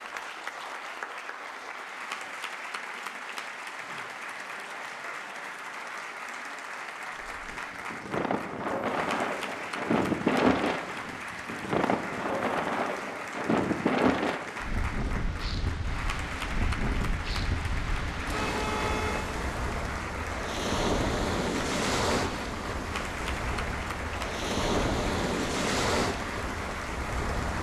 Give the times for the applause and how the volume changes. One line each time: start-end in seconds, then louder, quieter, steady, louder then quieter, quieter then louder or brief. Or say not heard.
0.0-27.5 steady.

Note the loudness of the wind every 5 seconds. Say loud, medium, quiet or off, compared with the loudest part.
off, loud, loud, medium, loud, loud.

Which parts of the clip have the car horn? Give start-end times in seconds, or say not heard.
18.2-19.3.